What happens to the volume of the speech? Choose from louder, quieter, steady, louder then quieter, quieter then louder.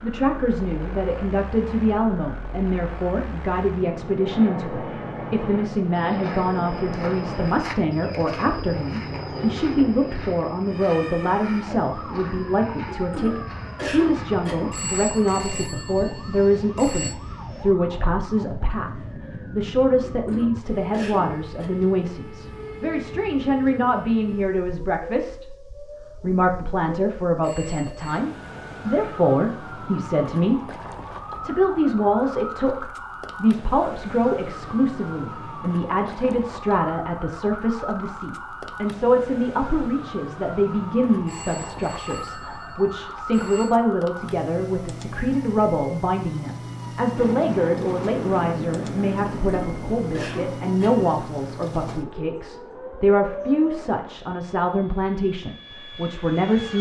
steady.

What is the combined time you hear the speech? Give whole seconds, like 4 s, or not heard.
57 s.